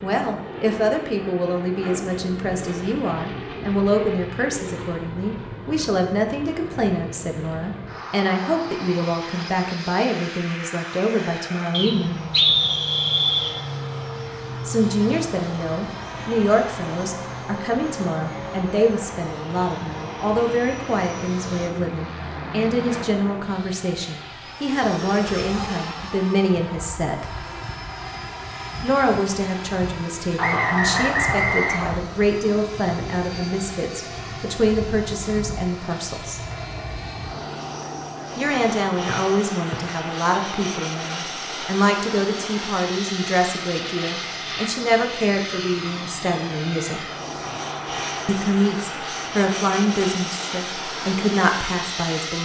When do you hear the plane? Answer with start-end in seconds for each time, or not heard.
0.0-52.3.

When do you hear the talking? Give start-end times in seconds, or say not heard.
0.0-12.2, 14.7-27.2, 28.8-36.4, 38.4-47.0, 48.2-52.3.